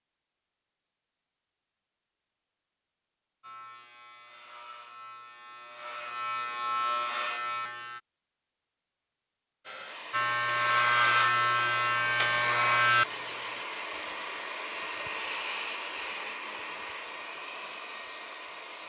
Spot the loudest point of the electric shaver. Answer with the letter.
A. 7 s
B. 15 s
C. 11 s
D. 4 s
C.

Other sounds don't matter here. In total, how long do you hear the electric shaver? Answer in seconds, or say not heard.
8 s.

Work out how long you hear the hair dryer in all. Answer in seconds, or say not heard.
9 s.